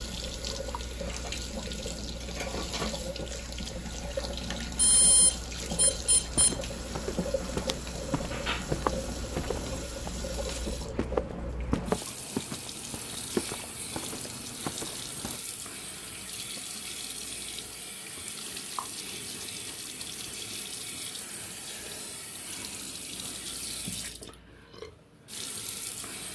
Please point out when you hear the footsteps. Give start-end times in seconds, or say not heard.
6.3-15.4.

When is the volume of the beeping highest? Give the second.
5 s.